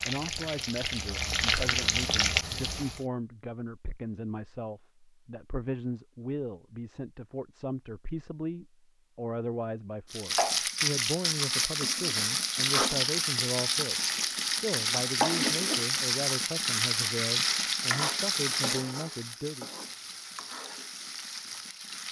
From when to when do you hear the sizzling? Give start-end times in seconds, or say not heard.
0.0-3.0, 10.1-22.0.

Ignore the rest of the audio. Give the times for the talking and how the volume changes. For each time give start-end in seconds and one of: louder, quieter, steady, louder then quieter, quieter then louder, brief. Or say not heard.
0.1-19.7 steady.